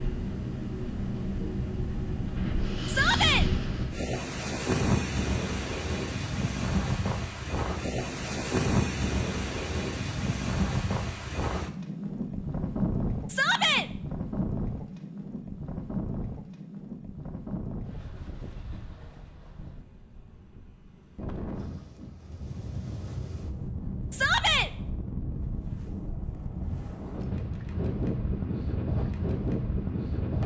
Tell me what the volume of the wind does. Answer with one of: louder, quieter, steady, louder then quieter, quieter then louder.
quieter then louder.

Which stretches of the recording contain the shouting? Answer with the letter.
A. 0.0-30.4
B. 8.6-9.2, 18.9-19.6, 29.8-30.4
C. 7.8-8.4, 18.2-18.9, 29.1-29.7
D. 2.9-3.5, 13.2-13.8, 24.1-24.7
D.